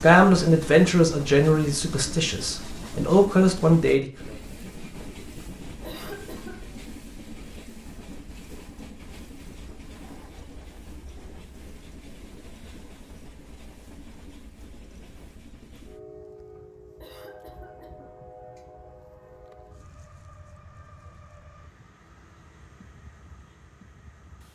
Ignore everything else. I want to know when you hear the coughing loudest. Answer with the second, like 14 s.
6 s.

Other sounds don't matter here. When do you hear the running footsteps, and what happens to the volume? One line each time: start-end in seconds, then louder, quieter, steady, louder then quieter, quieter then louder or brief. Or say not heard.
not heard.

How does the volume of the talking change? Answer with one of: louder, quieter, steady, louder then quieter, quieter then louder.
quieter then louder.